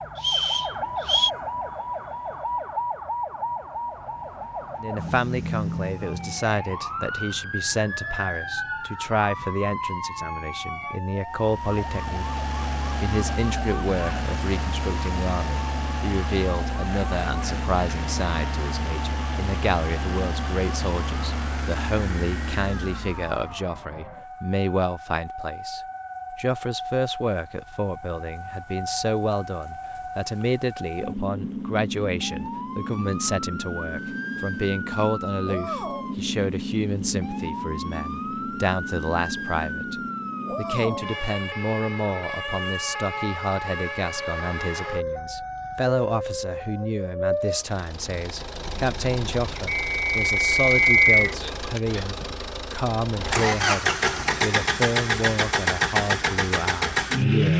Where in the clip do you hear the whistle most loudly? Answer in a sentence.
The loudest moment of the whistle is at 51 seconds.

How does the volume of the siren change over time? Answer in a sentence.
The loudness of the siren goes down, then up.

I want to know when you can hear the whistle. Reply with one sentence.
The whistle can be heard from 0.2 to 1.3 s and from 49.8 to 51.4 s.